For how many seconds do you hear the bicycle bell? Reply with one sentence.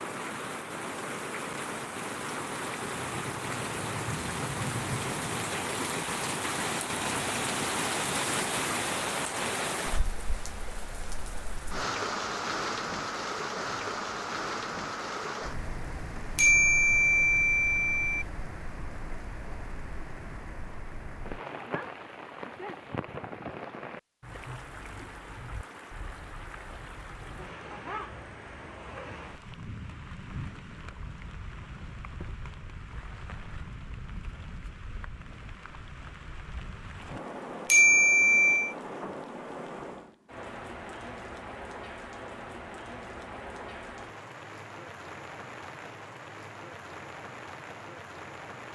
You can hear the bicycle bell for 3 seconds altogether.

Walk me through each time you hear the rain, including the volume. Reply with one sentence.
You can hear the rain from 0.0 to 48.7 s, getting quieter.